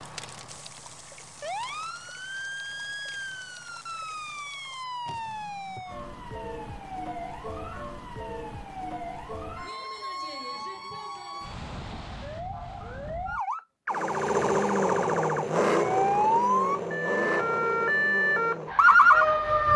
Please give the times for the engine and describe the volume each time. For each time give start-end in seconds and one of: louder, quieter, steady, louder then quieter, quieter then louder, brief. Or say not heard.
13.9-19.7 quieter.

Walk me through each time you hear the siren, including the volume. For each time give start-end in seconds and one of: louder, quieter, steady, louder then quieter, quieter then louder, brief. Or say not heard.
0.0-19.7 louder.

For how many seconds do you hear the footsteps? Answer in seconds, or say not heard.
not heard.